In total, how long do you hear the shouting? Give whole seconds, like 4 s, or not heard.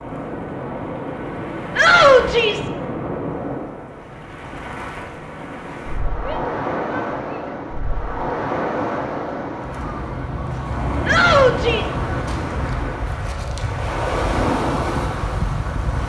3 s.